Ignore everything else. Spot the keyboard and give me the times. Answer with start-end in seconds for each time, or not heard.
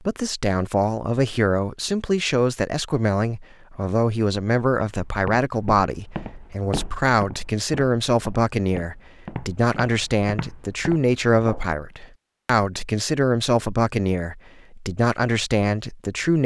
not heard.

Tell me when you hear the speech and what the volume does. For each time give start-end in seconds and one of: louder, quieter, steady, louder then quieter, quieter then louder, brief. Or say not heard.
0.1-16.4 steady.